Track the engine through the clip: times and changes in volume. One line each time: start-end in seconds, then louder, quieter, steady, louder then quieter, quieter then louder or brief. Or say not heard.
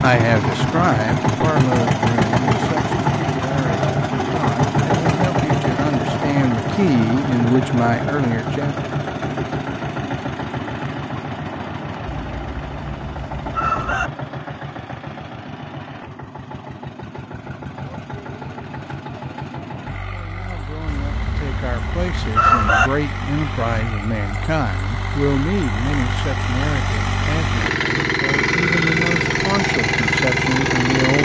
0.0-31.2 quieter then louder.